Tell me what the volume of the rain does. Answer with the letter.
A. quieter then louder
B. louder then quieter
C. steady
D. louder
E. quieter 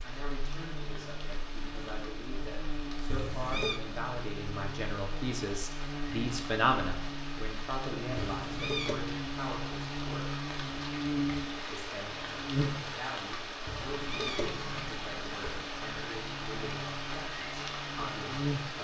D.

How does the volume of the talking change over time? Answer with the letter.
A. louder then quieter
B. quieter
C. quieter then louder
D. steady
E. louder
A.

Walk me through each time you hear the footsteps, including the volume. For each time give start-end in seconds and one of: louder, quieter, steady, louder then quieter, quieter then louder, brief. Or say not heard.
not heard.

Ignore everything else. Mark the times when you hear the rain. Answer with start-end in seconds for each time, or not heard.
0.0-18.8.